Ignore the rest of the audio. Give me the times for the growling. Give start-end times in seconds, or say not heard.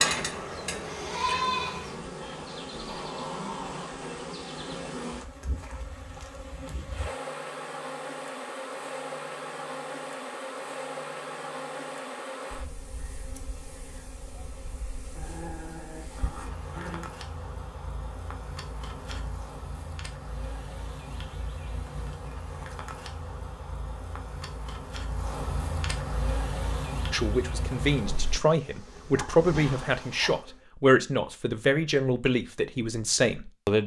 2.2-4.0, 15.2-17.1, 29.6-30.4.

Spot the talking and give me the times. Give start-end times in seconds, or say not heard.
27.1-33.8.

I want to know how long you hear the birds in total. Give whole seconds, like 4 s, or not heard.
not heard.